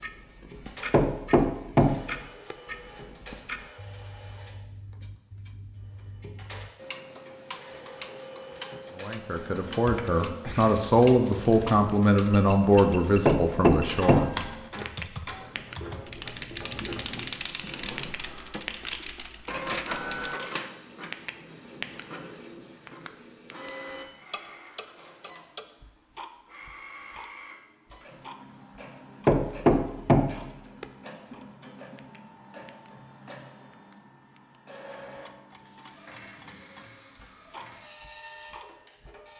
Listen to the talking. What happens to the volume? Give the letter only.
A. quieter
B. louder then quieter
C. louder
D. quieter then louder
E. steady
B.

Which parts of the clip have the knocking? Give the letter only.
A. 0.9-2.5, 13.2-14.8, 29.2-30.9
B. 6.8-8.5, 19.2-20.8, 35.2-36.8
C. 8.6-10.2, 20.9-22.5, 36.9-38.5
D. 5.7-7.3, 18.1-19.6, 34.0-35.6
A.